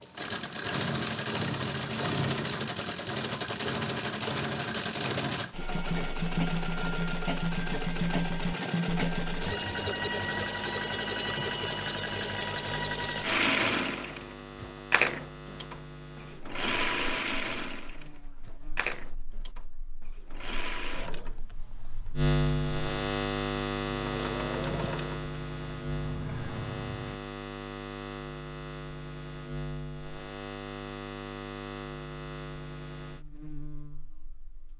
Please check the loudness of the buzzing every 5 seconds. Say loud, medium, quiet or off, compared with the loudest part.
off, off, quiet, quiet, loud, medium, medium.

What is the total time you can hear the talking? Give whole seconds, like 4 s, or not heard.
not heard.